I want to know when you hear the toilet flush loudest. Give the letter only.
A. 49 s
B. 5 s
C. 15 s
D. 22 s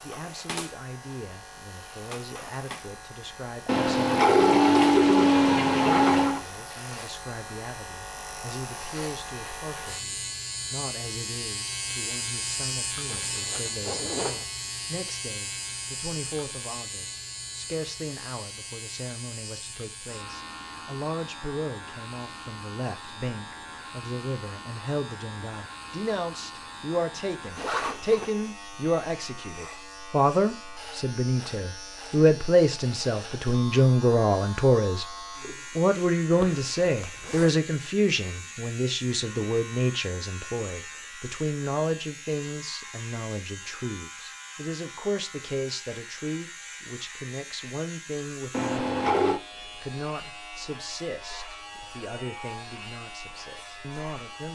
B.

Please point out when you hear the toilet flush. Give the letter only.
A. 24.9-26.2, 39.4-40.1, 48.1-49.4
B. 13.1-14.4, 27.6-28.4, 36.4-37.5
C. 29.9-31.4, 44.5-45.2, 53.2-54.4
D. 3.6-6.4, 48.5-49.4
D.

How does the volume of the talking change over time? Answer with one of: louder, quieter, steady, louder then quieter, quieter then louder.
louder then quieter.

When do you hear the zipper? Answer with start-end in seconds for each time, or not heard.
13.1-14.4, 27.6-28.4, 36.4-37.5.